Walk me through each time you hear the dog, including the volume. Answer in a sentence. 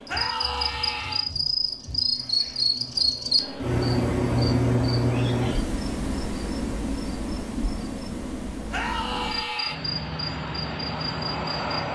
The dog can't be heard in this clip.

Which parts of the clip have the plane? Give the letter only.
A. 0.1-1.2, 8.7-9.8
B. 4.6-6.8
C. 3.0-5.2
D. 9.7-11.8
D.